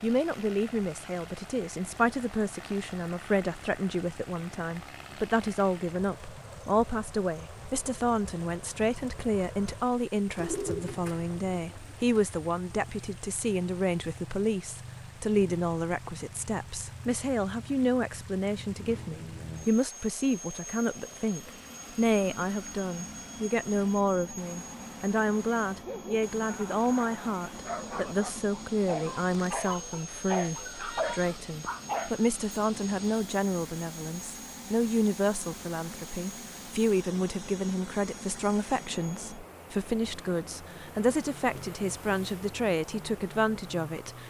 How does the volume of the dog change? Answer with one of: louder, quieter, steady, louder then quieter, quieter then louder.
louder.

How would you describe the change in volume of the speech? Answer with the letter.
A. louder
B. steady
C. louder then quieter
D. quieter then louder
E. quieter
B.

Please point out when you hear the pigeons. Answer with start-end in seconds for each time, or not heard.
10.3-12.2.